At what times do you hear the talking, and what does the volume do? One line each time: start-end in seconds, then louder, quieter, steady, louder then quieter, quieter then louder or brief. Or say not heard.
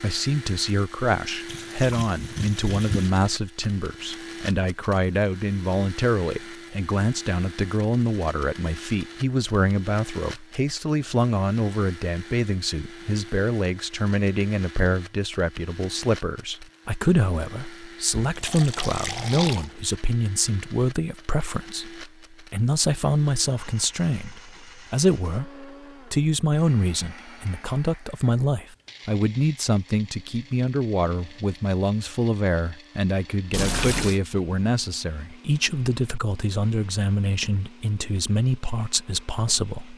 0.0-39.9 steady.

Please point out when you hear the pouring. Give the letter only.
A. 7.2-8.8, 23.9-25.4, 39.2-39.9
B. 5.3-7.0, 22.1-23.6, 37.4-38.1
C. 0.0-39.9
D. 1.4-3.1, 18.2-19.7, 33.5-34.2
D.